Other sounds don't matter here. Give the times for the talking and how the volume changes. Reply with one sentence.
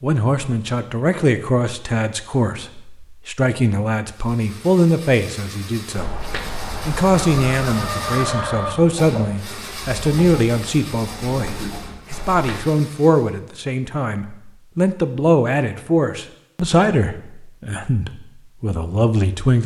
The talking can be heard from 0.0 to 19.6 s, at a steady volume.